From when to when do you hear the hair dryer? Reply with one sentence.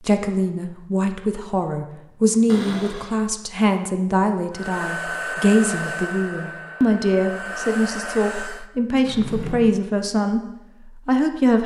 The hair dryer can be heard from 4.5 to 8.7 s.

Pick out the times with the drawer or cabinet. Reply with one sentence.
The drawer or cabinet can be heard from 2.5 to 3.1 s and from 9.1 to 9.6 s.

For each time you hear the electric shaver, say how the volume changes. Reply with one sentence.
You can't hear the electric shaver here.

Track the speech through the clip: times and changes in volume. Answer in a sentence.
The speech can be heard from 0.0 to 11.6 s, at a steady volume.